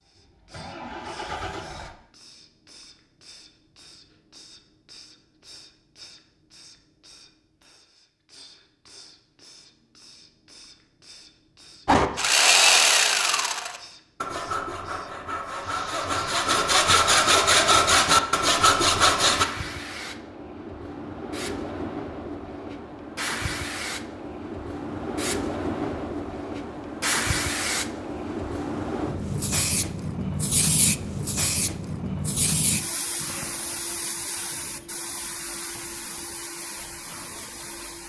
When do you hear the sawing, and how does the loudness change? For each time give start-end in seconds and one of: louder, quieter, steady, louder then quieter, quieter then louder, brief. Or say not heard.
11.8-19.4 quieter then louder.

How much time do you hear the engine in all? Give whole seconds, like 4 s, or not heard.
2 s.